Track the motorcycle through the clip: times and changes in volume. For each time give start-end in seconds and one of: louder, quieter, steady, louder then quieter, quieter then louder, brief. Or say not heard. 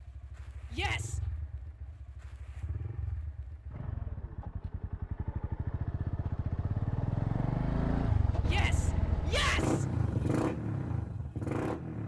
0.0-12.0 louder.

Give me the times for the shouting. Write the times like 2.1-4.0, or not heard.
0.7-1.2, 8.4-9.8.